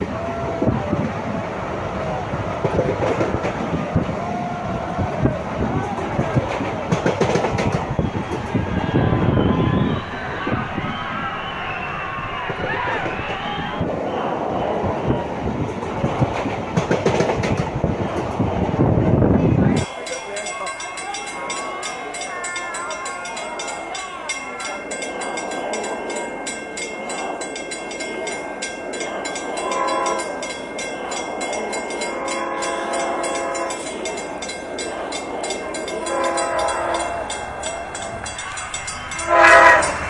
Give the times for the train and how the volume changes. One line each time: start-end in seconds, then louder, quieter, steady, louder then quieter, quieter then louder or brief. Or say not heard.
0.0-40.0 quieter then louder.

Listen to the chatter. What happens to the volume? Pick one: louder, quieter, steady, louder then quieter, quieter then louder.
steady.